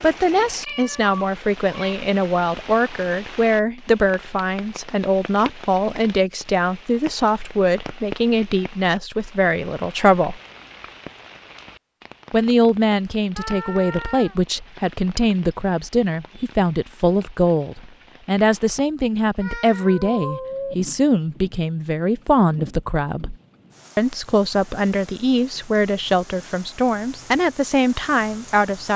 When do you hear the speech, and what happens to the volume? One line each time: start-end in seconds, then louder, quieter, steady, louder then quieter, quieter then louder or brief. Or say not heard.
0.0-10.4 steady
12.3-23.4 steady
23.9-28.9 steady.